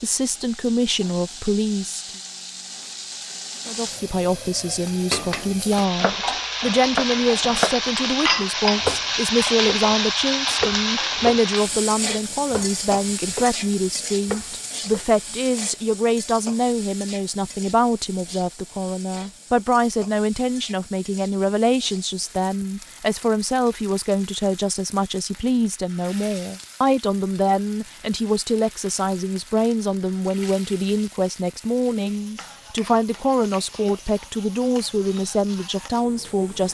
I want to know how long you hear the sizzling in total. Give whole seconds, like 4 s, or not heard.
37 s.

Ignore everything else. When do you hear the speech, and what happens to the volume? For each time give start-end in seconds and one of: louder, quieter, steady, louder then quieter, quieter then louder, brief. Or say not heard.
0.0-2.1 brief
3.6-36.7 steady.